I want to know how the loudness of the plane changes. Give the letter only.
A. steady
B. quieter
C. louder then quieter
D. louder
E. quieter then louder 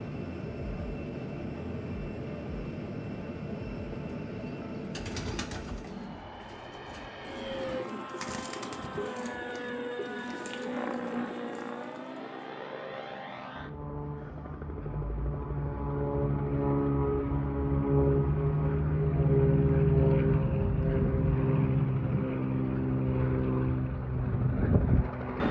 D.